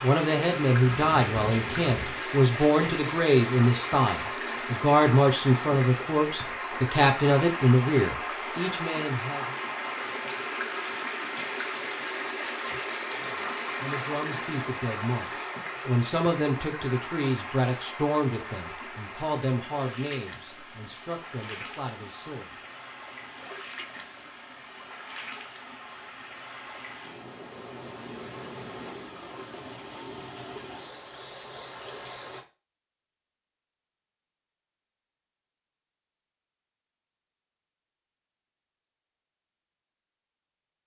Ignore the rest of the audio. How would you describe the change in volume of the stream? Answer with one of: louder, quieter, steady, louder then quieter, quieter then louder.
quieter.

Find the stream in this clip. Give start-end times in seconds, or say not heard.
0.0-32.5.